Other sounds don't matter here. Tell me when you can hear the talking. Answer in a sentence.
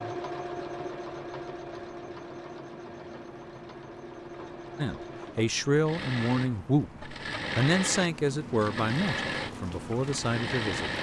The talking can be heard from 4.8 to 10.9 s.